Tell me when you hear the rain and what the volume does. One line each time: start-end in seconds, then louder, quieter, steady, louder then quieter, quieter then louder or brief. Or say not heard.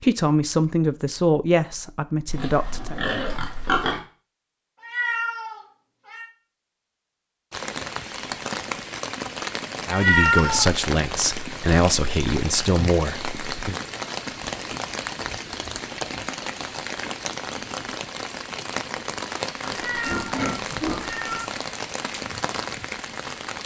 7.5-23.6 steady.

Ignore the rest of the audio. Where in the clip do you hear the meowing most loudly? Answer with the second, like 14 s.
10 s.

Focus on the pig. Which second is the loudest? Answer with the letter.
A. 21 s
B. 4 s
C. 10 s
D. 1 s
B.